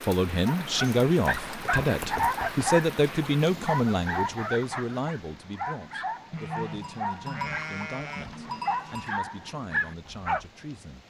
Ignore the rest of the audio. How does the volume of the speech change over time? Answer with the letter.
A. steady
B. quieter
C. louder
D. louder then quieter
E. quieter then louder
B.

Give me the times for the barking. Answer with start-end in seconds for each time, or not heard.
0.5-10.4.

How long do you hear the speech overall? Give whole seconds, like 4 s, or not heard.
11 s.